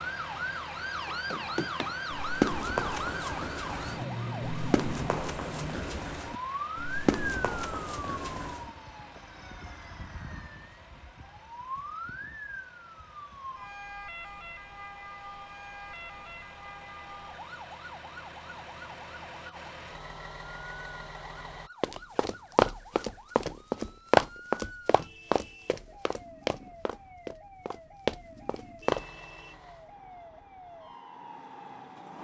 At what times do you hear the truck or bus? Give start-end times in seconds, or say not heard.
0.0-21.7, 28.9-32.1.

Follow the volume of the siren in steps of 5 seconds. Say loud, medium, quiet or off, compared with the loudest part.
loud, loud, medium, medium, quiet, quiet, quiet.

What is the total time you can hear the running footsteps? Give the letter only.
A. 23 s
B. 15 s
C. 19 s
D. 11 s
B.